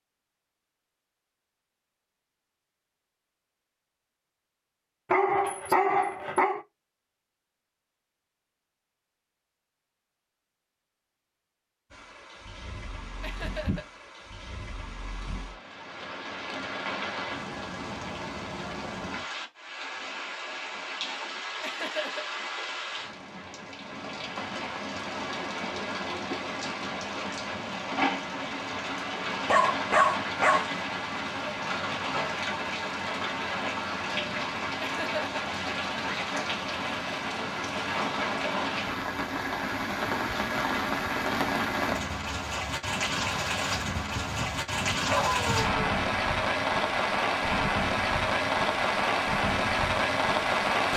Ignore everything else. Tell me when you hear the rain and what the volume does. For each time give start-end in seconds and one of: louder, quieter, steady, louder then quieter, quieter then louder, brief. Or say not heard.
11.9-50.9 louder.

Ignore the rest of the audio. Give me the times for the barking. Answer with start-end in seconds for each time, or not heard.
5.1-6.6, 29.4-30.6, 43.9-45.9.